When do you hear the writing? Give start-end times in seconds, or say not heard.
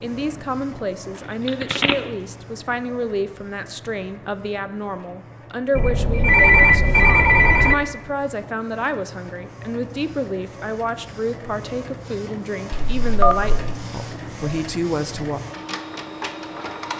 not heard.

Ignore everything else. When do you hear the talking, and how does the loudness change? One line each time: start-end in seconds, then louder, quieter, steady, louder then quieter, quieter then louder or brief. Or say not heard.
0.0-15.4 steady.